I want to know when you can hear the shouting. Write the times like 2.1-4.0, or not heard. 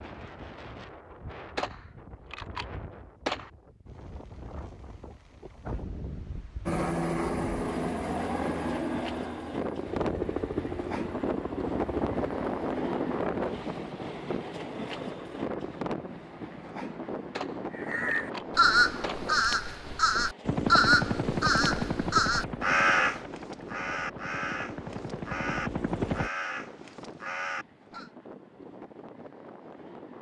not heard.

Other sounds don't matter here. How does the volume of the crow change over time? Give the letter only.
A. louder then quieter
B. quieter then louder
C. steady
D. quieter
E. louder
D.